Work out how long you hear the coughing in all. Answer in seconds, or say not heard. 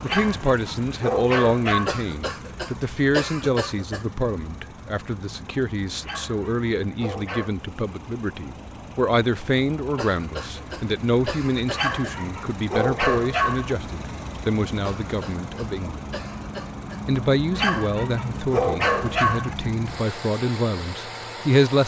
7 s.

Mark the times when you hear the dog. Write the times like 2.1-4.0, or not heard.
0.1-1.9, 6.0-7.5, 11.7-13.8, 17.6-19.6.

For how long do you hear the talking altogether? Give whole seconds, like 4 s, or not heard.
21 s.